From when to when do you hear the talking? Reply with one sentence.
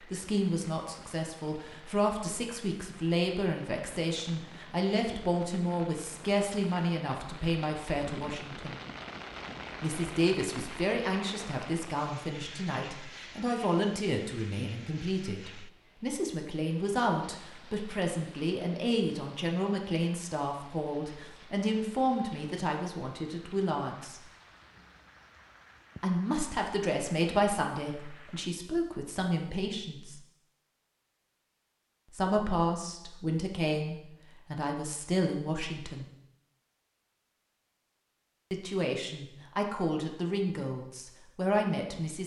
You can hear the talking from 0.0 to 8.8 s, from 9.8 to 24.2 s, from 26.0 to 30.2 s, from 32.1 to 36.0 s and from 38.5 to 42.2 s.